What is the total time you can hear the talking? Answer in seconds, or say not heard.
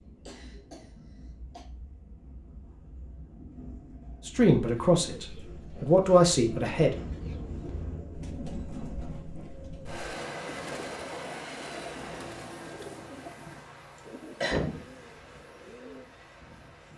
3 s.